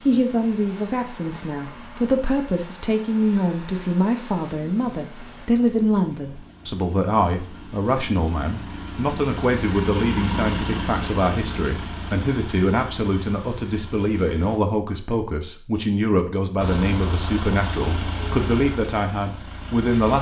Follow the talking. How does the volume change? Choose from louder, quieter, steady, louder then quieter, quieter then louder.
steady.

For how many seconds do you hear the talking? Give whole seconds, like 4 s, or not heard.
20 s.